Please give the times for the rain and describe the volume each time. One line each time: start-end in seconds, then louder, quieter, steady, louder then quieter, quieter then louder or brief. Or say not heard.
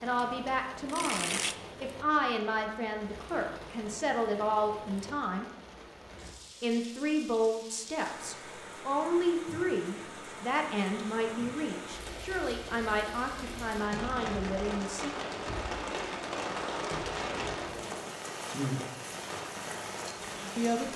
0.0-20.9 louder.